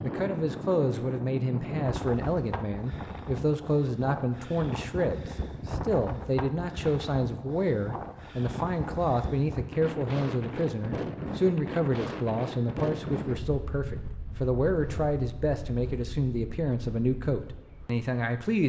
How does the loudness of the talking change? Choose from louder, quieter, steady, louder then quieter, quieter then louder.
steady.